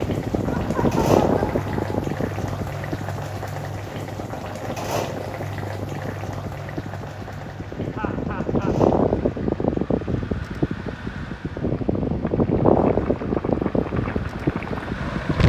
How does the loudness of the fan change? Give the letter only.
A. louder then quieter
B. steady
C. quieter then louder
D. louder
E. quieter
C.